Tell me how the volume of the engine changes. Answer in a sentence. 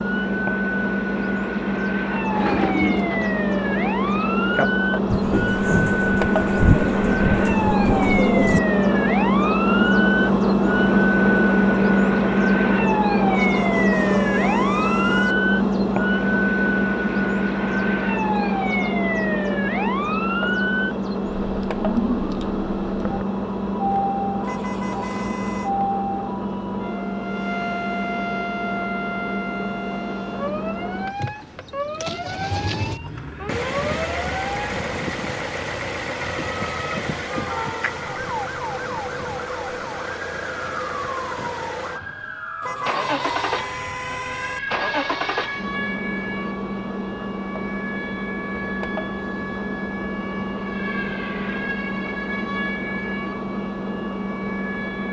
The volume of the engine goes down.